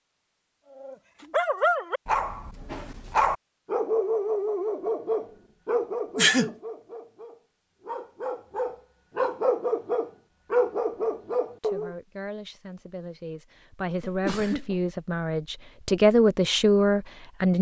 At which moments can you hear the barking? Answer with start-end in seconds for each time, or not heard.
0.8-11.9.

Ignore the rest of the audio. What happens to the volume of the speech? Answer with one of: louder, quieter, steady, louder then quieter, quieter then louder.
louder.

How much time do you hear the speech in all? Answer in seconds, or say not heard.
6 s.